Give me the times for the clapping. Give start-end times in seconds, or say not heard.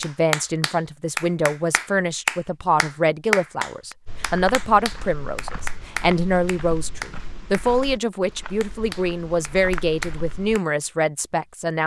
0.0-10.6.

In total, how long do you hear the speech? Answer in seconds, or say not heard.
12 s.